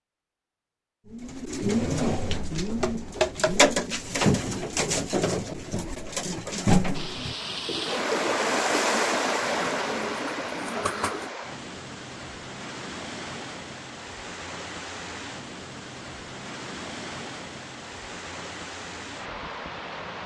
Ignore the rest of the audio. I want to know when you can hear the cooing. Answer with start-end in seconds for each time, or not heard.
1.1-11.3.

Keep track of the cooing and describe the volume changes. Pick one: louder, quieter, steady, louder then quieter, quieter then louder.
quieter.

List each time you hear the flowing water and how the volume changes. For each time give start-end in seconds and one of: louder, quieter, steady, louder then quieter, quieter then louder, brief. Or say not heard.
6.9-20.2 quieter.